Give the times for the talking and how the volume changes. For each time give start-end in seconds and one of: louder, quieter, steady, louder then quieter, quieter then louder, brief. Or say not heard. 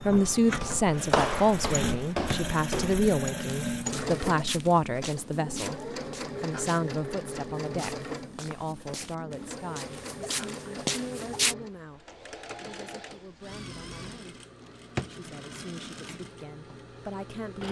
0.0-14.4 quieter
15.1-17.6 brief.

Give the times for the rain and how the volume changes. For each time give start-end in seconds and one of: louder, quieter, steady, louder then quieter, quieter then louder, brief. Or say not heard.
not heard.